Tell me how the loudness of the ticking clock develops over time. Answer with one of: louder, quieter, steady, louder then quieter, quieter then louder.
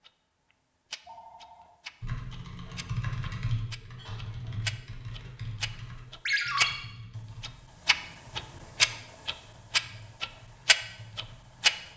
louder.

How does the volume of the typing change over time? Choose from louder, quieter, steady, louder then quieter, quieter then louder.
quieter.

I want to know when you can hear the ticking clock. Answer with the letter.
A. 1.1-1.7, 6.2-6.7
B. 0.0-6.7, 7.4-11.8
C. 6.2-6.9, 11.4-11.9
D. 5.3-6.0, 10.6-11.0
B.